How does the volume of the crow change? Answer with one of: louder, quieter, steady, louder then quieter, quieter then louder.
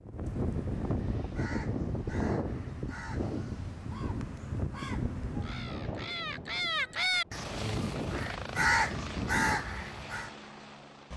louder.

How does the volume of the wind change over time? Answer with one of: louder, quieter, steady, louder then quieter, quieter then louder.
quieter.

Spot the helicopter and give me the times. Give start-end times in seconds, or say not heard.
7.3-11.1.